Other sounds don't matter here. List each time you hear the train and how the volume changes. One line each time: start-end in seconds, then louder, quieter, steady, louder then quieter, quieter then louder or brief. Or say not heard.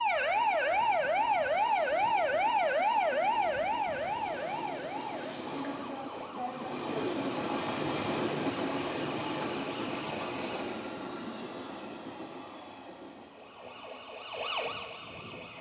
0.0-15.5 louder then quieter.